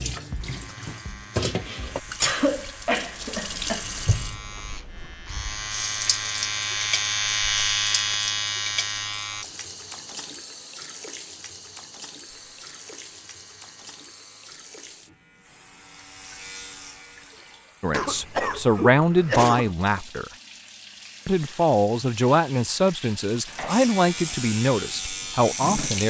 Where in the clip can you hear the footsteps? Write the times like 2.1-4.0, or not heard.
not heard.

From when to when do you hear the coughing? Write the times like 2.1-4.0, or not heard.
2.2-3.9, 17.9-19.7.